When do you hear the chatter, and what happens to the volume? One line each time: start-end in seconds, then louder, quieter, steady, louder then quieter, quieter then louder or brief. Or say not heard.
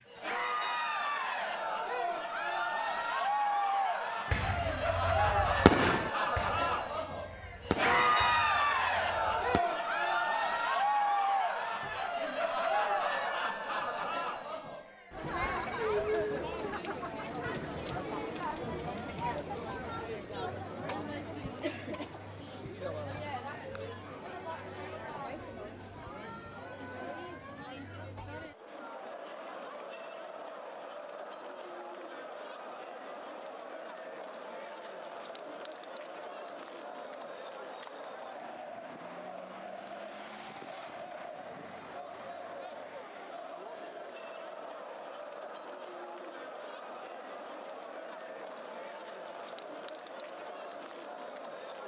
0.1-51.8 quieter.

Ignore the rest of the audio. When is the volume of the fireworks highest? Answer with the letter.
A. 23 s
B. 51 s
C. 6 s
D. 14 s
C.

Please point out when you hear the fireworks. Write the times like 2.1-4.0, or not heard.
4.3-9.7.